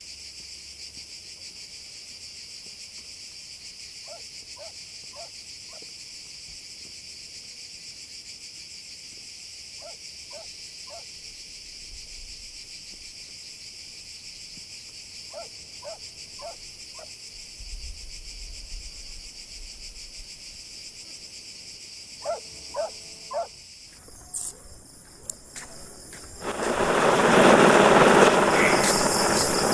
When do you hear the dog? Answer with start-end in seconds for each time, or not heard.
4.0-5.8, 9.8-11.2, 15.3-17.1, 22.2-23.5.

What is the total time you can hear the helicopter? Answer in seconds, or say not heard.
3 s.